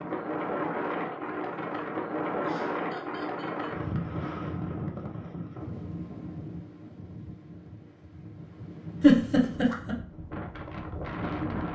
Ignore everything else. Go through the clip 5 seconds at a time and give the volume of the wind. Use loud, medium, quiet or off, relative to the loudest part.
loud, medium, loud.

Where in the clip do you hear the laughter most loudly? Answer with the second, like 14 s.
9 s.